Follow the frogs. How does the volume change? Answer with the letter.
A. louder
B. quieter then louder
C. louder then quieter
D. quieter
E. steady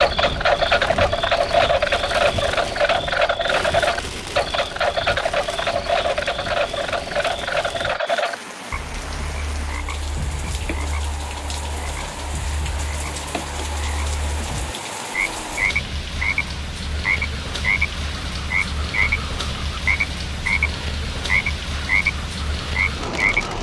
B.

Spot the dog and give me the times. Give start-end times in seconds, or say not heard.
not heard.